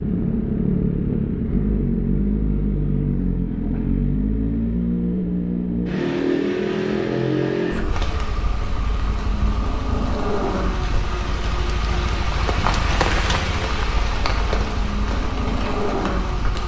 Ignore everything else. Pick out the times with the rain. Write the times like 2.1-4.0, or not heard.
7.8-16.6.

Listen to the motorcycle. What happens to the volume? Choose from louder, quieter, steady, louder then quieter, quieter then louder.
quieter.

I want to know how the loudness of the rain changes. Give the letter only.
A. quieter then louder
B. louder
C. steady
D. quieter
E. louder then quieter
E.